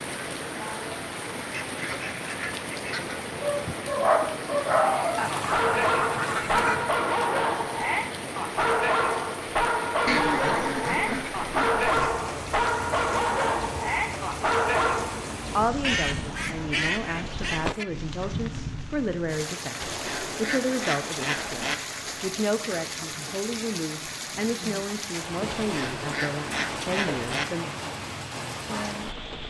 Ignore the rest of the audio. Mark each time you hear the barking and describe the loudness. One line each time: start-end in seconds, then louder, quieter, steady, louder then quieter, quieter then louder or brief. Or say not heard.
3.4-15.2 steady.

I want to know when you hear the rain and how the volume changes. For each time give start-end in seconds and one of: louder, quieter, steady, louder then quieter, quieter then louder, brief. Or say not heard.
0.0-29.4 steady.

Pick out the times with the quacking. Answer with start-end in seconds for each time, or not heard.
1.4-3.1, 5.2-6.9, 10.1-12.1, 15.8-17.9, 19.8-21.8, 25.5-27.4.